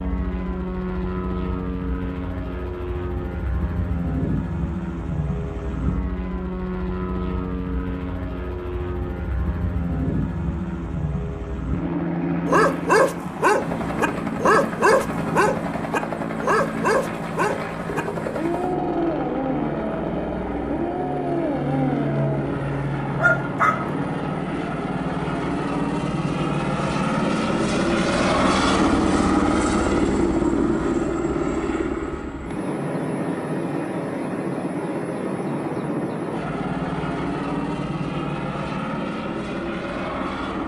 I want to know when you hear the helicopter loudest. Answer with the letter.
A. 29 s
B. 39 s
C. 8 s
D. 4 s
A.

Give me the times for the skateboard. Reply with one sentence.
You can't hear the skateboard here.